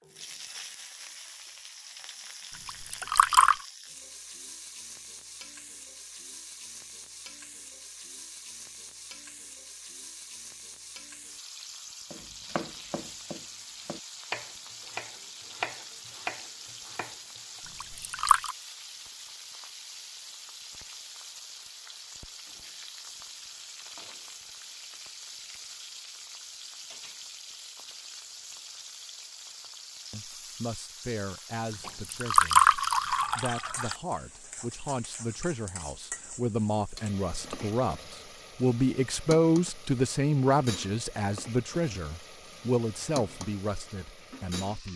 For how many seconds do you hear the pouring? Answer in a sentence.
The pouring can be heard for 4 seconds in total.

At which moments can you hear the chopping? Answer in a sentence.
You can hear the chopping from 12.1 to 17.6 s.